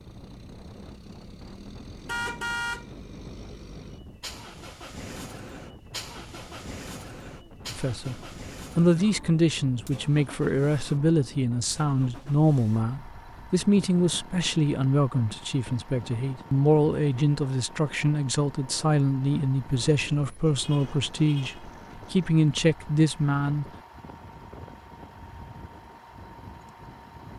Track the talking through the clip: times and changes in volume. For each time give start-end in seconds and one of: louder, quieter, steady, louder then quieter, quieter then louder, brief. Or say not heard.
7.7-23.6 steady.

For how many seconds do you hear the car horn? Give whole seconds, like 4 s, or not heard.
2 s.